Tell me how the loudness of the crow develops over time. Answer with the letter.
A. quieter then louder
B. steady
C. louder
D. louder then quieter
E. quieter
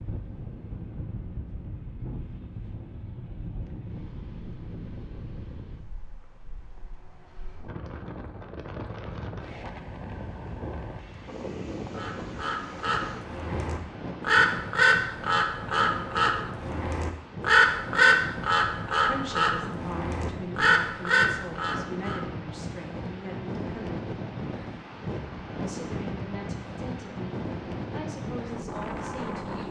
C.